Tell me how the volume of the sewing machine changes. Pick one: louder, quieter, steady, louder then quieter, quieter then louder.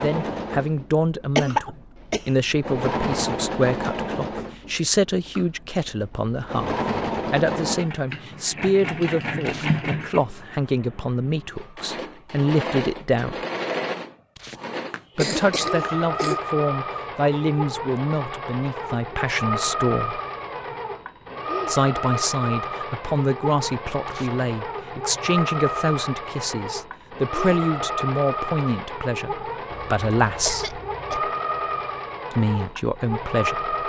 steady.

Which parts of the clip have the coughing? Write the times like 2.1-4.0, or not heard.
1.4-2.2, 14.4-16.4, 29.7-31.2.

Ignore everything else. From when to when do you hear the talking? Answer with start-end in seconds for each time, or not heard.
0.0-13.3, 15.2-20.2, 21.6-30.8, 32.3-33.7.